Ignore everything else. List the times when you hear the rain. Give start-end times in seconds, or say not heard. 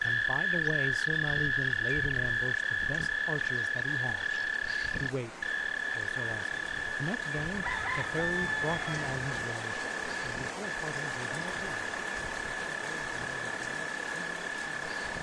0.0-15.1.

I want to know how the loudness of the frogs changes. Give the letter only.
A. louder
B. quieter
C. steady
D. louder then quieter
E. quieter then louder
B.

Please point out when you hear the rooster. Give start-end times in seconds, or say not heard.
7.5-9.2.